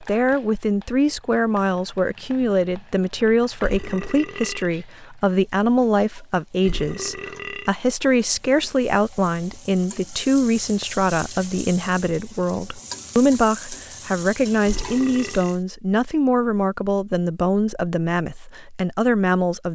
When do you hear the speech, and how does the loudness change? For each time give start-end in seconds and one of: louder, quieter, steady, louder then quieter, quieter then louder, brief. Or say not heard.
0.0-19.7 steady.